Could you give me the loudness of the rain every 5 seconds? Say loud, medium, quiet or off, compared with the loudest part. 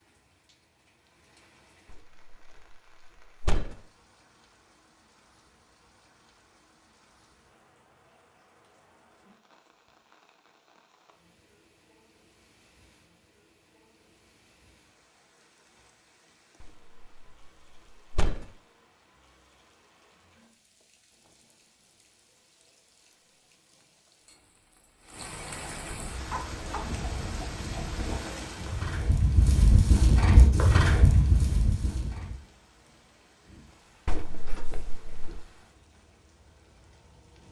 quiet, quiet, quiet, quiet, quiet, loud, quiet, quiet.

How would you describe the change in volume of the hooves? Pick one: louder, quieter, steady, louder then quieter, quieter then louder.
louder.